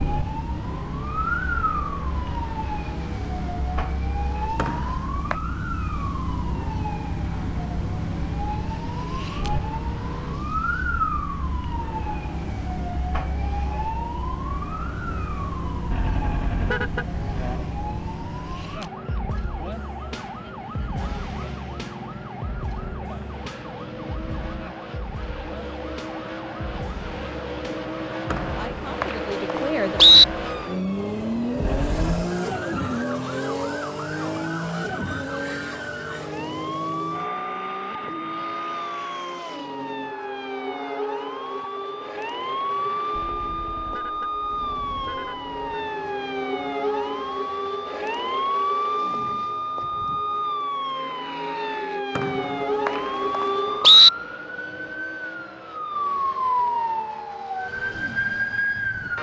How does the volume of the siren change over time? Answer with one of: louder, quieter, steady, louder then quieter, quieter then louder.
quieter then louder.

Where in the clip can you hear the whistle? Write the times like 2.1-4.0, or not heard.
4.5-5.3, 28.3-30.2, 52.1-54.1.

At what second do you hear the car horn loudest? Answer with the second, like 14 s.
17 s.